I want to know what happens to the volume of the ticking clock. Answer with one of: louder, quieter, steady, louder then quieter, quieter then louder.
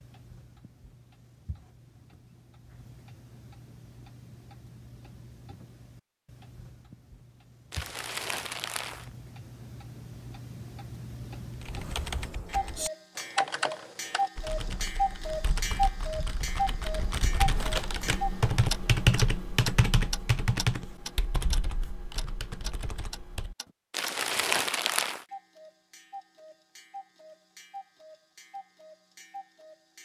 louder then quieter.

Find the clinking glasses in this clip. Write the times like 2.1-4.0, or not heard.
not heard.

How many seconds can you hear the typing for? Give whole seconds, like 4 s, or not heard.
12 s.